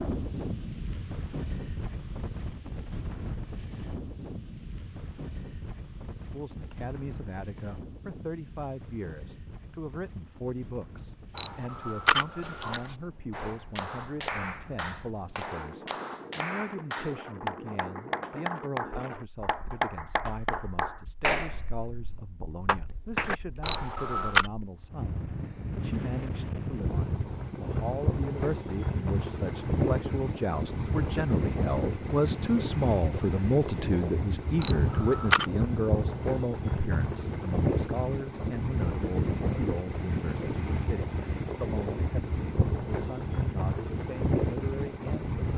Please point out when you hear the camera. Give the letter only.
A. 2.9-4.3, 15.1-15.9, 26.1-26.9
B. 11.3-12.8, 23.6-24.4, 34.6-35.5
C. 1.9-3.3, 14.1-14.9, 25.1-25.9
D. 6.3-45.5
B.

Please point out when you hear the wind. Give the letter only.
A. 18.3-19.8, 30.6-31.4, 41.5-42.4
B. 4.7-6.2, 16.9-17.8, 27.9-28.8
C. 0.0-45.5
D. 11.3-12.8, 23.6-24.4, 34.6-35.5
C.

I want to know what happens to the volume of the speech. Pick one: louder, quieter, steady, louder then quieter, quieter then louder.
louder then quieter.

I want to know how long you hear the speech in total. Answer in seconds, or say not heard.
39 s.